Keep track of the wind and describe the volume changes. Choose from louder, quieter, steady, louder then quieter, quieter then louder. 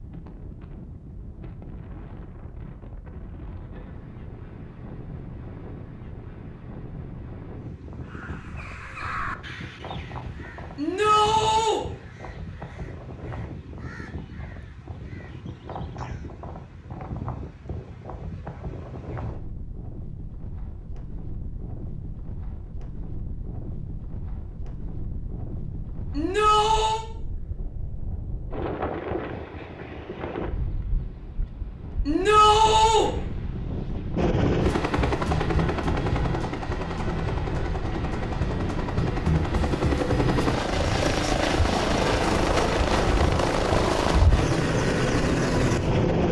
louder.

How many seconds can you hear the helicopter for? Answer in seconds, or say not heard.
12 s.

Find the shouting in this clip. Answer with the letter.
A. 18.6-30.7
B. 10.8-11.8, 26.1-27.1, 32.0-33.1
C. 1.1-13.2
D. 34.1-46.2
B.